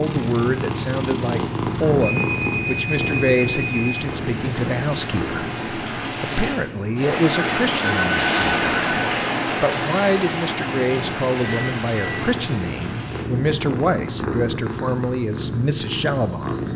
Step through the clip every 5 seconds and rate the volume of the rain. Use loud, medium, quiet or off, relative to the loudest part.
quiet, loud, medium, off.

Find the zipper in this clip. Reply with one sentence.
You can't hear the zipper here.